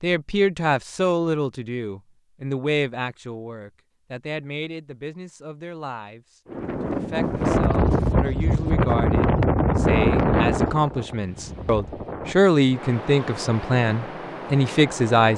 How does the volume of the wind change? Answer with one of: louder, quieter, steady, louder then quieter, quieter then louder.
quieter.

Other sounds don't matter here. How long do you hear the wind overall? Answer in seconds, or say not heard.
9 s.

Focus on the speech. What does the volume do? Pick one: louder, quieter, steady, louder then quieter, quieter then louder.
quieter then louder.